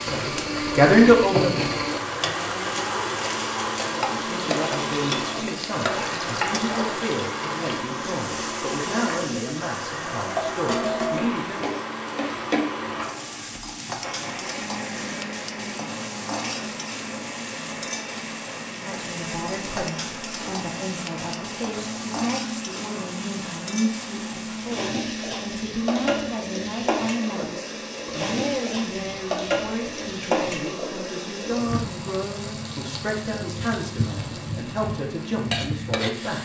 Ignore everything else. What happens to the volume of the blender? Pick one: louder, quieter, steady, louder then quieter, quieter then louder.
quieter.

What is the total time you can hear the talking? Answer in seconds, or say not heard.
28 s.